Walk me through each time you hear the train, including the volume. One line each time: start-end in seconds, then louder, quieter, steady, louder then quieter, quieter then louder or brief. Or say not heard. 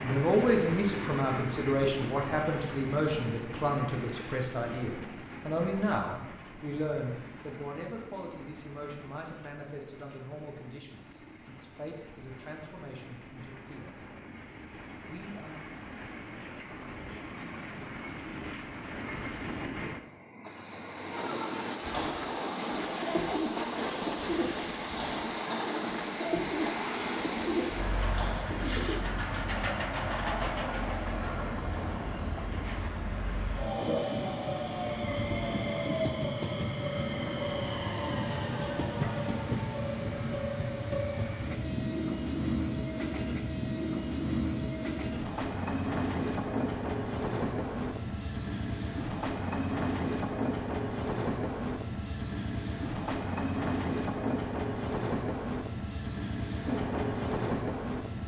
0.0-58.2 louder.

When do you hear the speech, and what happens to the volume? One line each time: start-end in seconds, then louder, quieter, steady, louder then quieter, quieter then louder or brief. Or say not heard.
0.0-13.9 quieter
15.1-15.6 brief.